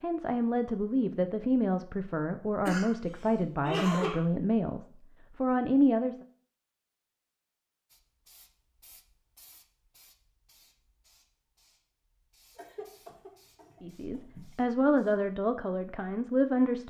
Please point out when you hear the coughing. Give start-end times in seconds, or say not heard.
2.6-4.2, 12.6-14.5.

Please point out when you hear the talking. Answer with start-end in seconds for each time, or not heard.
0.0-6.2, 13.8-16.8.